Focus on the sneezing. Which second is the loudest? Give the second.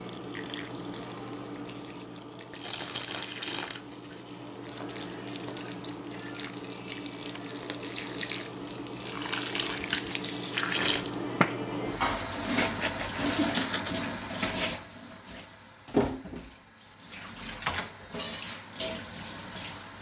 13 s.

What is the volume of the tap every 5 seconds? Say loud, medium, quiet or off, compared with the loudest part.
medium, medium, loud, medium.